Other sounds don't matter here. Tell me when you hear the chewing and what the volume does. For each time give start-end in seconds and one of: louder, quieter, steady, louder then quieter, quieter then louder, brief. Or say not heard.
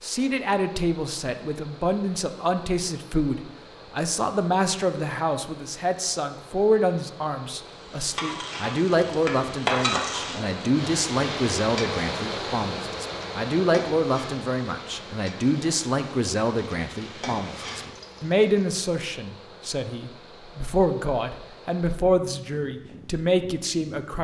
not heard.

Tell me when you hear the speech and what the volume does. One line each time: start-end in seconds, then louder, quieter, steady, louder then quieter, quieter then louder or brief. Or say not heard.
0.0-24.1 steady.